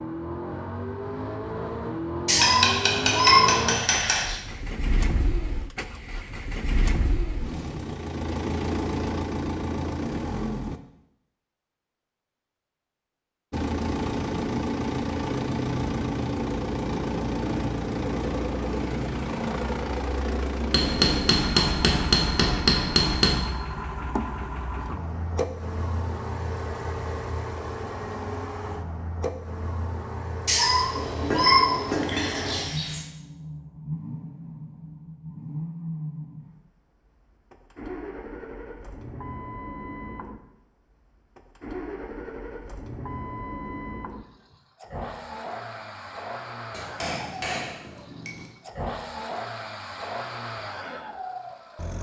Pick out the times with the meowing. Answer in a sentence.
You can hear the meowing from 2.2 to 4.4 s and from 30.4 to 33.0 s.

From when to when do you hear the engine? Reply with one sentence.
The engine can be heard from 0.0 to 10.8 s and from 13.5 to 51.9 s.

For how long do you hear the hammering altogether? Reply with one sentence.
You can hear the hammering for 8 seconds altogether.